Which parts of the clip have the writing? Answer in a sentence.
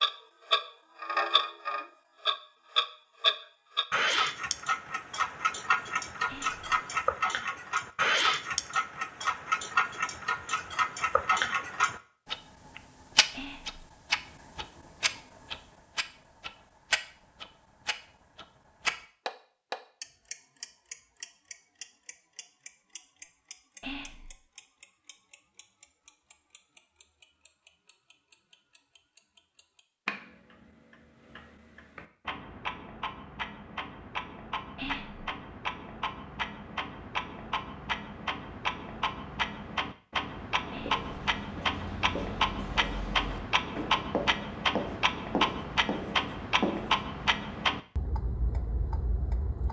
The writing can be heard from 40.7 to 47.0 s.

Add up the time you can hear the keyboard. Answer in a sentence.
You can't hear the keyboard here.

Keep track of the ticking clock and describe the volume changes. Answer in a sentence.
The volume of the ticking clock goes down, then up.